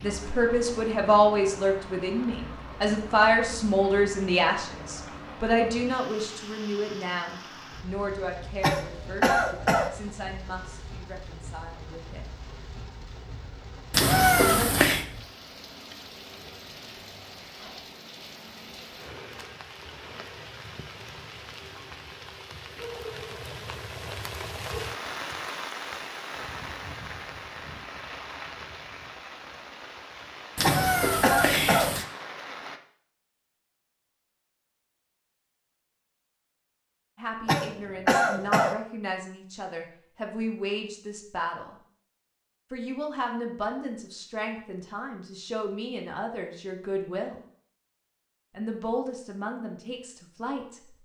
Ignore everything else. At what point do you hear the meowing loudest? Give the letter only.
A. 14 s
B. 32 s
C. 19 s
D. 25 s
A.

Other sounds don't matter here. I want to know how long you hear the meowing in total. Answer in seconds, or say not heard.
3 s.